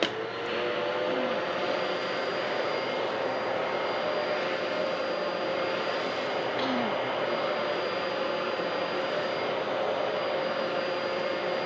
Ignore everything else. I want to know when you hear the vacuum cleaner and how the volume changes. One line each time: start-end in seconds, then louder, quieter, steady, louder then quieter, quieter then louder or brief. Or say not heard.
0.0-11.6 steady.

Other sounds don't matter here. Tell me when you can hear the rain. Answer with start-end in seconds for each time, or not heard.
not heard.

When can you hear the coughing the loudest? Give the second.
7 s.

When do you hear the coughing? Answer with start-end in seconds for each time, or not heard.
1.1-1.5, 6.5-7.0.